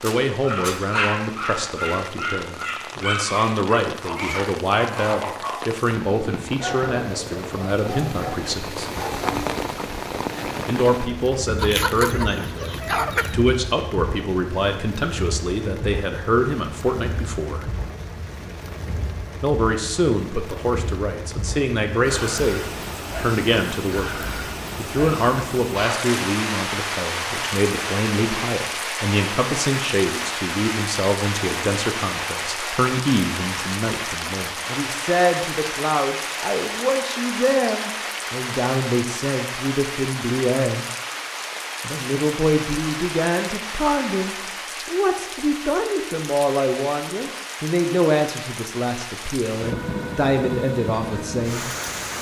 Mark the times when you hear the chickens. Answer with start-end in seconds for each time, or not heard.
11.6-13.3.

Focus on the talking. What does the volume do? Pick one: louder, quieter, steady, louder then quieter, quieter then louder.
steady.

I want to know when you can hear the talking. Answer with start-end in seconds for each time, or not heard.
0.0-8.8, 10.7-17.7, 19.4-40.9, 41.8-51.7.